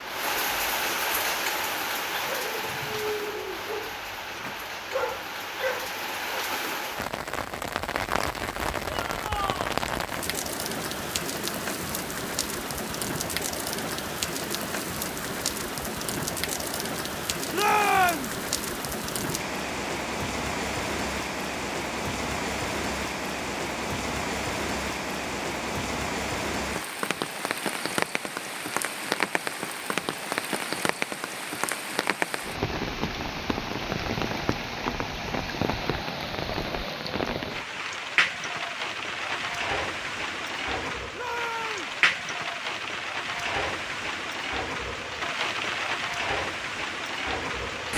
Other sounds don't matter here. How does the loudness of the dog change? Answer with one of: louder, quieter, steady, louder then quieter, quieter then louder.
quieter then louder.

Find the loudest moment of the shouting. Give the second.
18 s.